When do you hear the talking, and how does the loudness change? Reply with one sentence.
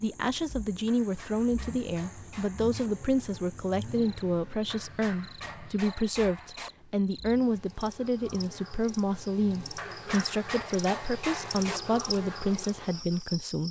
You can hear the talking from 0.0 to 13.6 s, at a steady volume.